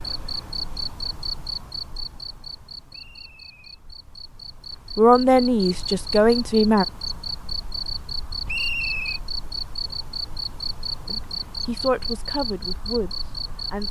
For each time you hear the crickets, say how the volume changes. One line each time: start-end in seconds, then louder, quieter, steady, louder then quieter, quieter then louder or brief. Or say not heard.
0.0-13.8 quieter then louder.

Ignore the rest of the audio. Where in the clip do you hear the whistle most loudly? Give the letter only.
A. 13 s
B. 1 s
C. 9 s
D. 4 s
C.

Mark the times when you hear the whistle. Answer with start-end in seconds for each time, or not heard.
2.9-3.7, 8.4-9.2.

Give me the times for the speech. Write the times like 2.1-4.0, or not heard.
5.0-6.8, 11.1-13.8.